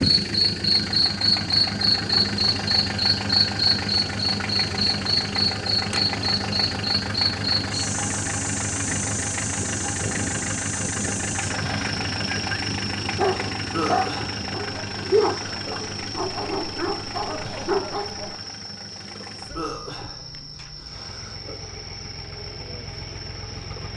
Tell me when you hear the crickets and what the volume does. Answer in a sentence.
The crickets can be heard from 0.0 to 23.9 s, getting quieter.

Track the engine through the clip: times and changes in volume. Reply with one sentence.
You can hear the engine from 0.0 to 23.9 s, getting quieter.